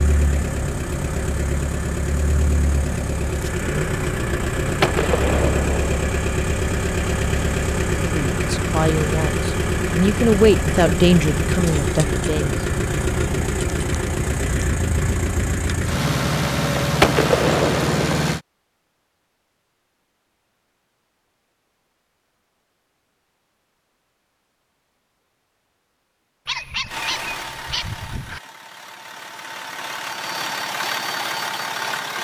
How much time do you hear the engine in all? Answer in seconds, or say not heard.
24 s.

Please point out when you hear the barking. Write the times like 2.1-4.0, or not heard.
26.4-28.4.